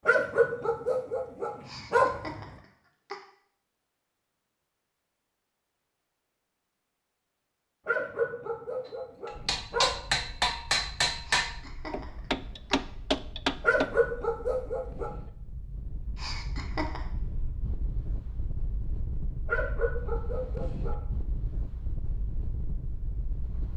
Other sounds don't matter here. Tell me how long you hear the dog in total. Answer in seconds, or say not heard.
8 s.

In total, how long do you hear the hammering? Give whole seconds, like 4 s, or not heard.
5 s.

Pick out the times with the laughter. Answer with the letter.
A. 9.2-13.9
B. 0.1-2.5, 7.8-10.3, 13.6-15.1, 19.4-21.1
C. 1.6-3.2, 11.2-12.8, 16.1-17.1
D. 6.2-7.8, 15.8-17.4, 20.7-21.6
C.